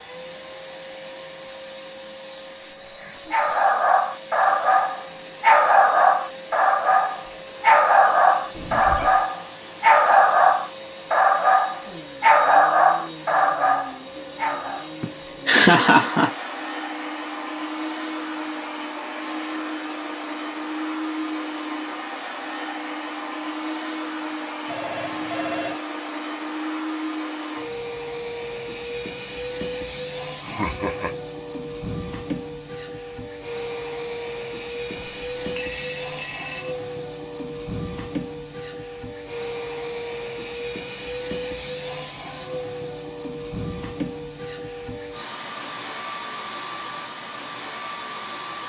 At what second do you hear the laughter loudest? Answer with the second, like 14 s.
16 s.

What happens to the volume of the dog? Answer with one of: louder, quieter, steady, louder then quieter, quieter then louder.
steady.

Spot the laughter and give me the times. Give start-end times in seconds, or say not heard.
15.0-16.3, 30.4-31.1.